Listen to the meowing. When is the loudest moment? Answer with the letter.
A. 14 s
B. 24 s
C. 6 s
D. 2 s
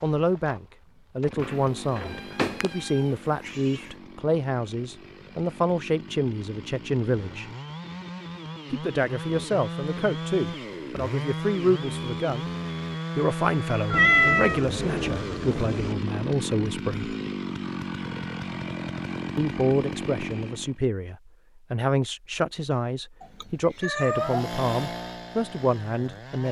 A.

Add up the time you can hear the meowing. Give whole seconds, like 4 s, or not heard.
5 s.